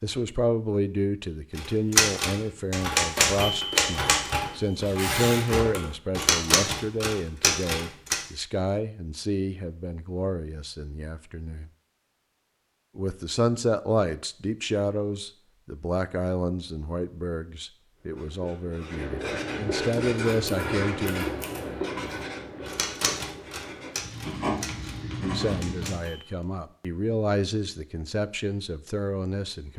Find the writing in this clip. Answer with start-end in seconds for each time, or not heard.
17.9-26.0.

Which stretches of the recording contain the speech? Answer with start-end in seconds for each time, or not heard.
0.0-11.7, 12.9-21.2, 25.1-29.7.